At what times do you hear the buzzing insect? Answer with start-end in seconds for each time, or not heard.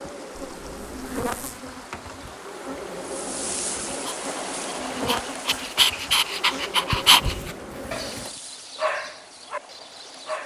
0.0-8.4.